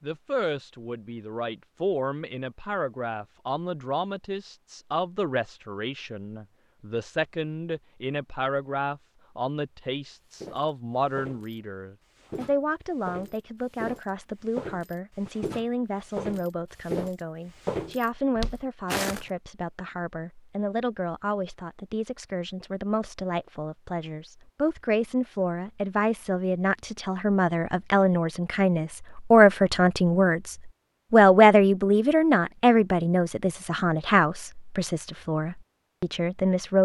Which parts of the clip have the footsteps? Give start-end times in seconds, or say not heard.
10.3-11.6, 12.2-19.2.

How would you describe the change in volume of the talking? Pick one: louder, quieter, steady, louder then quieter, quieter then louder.
louder.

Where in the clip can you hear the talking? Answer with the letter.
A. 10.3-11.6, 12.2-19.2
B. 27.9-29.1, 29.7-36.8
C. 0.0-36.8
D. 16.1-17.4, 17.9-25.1
C.